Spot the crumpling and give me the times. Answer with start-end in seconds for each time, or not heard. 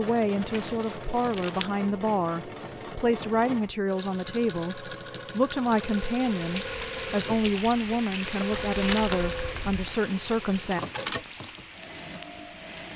0.1-1.7, 8.5-9.8.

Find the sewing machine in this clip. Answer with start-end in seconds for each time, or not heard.
0.0-12.9.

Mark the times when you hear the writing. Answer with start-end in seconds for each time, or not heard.
not heard.